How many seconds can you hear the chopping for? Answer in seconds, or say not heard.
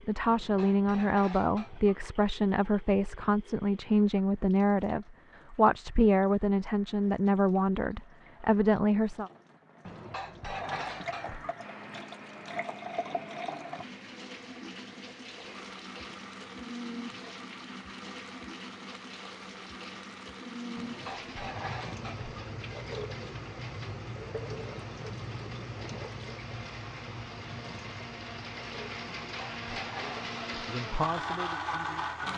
not heard.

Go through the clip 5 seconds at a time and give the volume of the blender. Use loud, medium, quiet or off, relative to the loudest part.
off, off, quiet, quiet, quiet, medium, loud.